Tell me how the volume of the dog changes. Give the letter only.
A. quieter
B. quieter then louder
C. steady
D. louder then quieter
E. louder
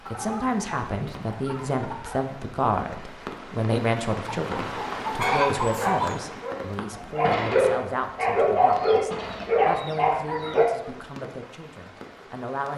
E.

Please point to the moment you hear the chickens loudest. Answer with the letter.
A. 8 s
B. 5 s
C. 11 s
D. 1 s
B.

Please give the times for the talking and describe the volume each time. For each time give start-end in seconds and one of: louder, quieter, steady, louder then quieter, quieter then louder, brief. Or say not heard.
0.1-12.7 quieter.